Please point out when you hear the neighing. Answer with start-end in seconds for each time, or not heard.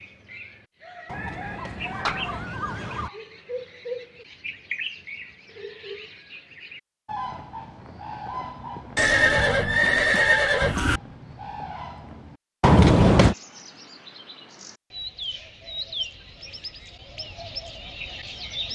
1.1-3.1, 8.9-11.0, 12.6-13.3.